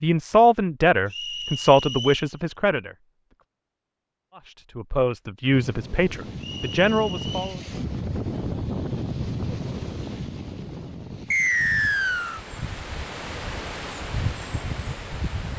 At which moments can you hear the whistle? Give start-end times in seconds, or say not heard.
1.1-2.3, 6.4-7.6, 11.3-12.4.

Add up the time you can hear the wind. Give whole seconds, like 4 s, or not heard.
10 s.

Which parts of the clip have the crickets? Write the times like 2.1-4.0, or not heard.
not heard.